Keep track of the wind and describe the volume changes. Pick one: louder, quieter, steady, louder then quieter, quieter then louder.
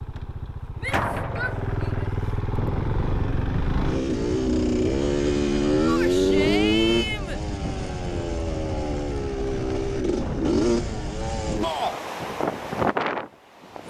louder.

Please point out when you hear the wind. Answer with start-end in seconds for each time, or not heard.
2.5-13.8.